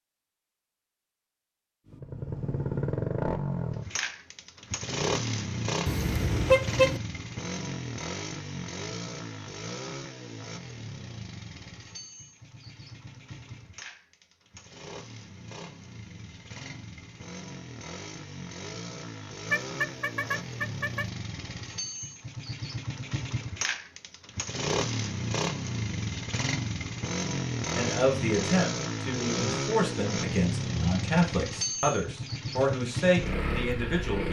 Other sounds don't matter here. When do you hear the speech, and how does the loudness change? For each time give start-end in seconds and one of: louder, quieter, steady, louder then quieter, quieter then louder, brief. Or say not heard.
27.8-34.2 steady.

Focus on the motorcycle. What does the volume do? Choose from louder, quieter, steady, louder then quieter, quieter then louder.
quieter then louder.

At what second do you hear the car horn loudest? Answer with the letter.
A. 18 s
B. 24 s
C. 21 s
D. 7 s
D.